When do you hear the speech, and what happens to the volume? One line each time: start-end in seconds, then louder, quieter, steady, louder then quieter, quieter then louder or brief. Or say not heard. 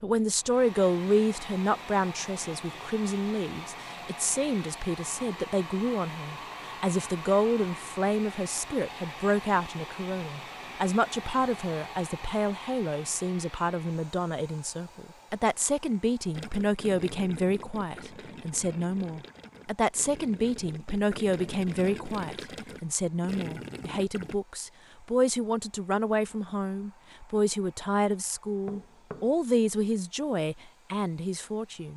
0.0-31.9 steady.